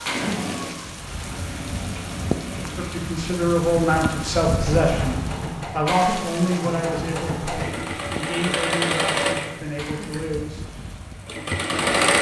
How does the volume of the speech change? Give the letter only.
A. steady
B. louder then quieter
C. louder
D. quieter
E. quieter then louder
D.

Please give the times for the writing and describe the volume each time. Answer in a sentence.
The writing can't be heard in this clip.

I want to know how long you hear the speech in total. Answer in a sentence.
The speech can be heard for 8 seconds in total.